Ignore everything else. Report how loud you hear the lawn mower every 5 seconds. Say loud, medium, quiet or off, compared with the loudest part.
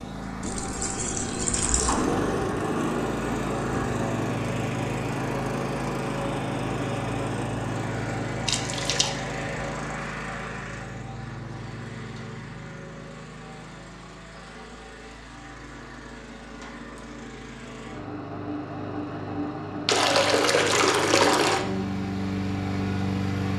loud, loud, medium, medium, loud.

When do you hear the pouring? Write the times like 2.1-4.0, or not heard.
0.4-2.0, 8.4-9.1, 19.9-21.6.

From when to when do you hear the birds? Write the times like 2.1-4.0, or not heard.
not heard.